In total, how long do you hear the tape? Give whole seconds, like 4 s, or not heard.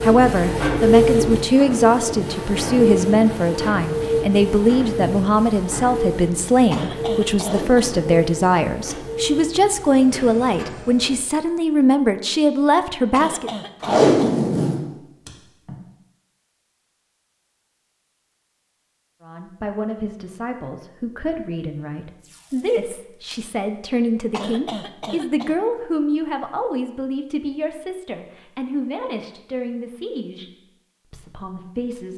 4 s.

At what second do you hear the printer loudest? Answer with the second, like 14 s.
1 s.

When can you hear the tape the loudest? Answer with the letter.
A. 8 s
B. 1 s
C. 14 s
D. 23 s
C.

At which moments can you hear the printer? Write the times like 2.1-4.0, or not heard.
0.0-11.2.